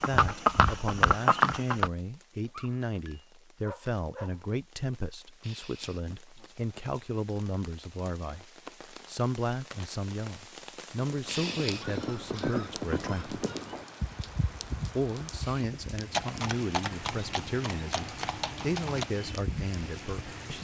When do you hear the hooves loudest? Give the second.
1 s.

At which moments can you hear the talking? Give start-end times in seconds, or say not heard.
0.0-13.4, 14.9-20.5.